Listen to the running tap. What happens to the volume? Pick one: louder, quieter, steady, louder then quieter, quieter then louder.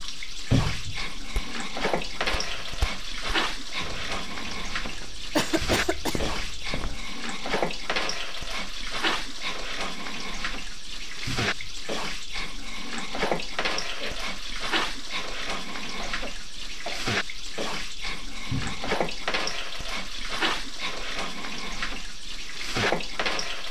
steady.